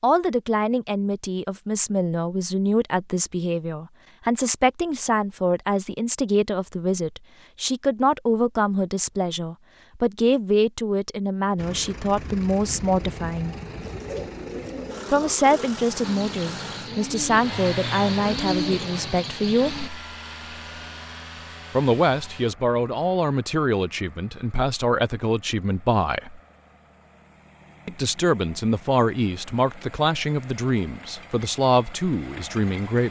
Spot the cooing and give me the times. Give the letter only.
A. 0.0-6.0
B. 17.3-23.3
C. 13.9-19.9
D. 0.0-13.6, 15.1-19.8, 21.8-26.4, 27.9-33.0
C.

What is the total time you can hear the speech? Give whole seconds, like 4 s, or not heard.
28 s.